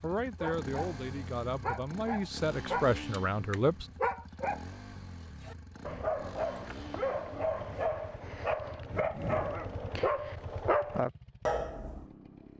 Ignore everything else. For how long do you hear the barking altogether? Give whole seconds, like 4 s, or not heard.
11 s.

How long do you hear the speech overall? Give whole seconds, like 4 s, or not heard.
4 s.